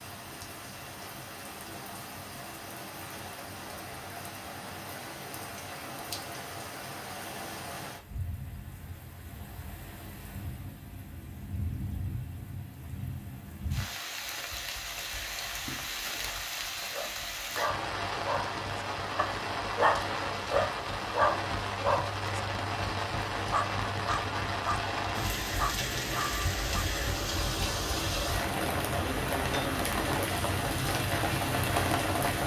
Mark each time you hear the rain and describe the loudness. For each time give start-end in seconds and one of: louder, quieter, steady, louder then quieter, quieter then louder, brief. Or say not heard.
0.0-32.4 louder.